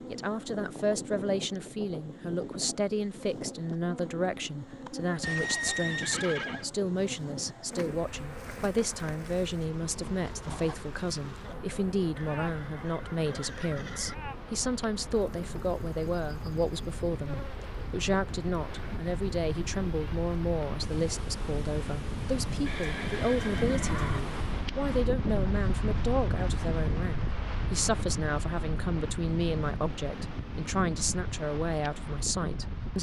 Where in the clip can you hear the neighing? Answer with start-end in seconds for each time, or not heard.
5.2-6.7, 12.2-14.2, 22.6-24.2.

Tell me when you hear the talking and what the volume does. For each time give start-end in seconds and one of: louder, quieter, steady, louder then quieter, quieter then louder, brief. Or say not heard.
0.1-32.9 steady.